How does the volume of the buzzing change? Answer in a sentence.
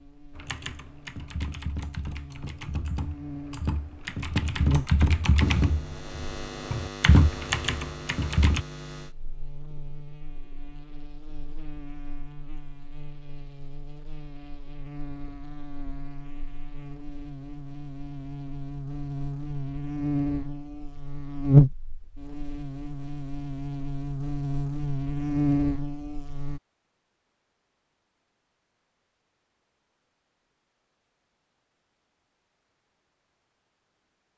The loudness of the buzzing goes down, then up.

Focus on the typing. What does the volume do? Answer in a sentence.
The loudness of the typing goes up.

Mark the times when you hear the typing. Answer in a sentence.
The typing can be heard from 0.3 to 8.7 s.